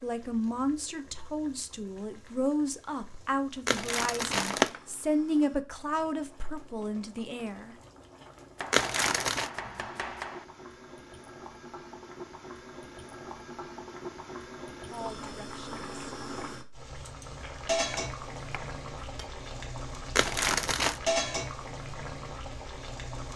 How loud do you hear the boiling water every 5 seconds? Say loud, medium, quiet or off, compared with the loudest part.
quiet, quiet, medium, loud, loud.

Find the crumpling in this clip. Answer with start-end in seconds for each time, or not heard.
3.6-4.7, 8.7-9.5, 20.1-21.0.